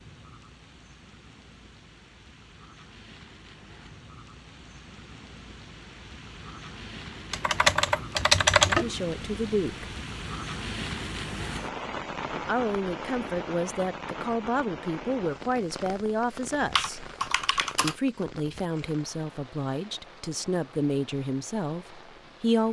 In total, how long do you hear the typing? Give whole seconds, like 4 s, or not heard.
3 s.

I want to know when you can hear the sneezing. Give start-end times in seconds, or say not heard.
not heard.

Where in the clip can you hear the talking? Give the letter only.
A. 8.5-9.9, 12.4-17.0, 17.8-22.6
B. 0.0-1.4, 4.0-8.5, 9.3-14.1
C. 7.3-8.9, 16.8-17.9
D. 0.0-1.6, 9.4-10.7
A.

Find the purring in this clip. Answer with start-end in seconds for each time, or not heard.
not heard.